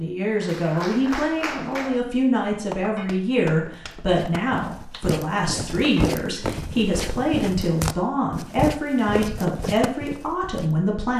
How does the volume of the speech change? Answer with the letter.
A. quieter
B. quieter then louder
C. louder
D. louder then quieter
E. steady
E.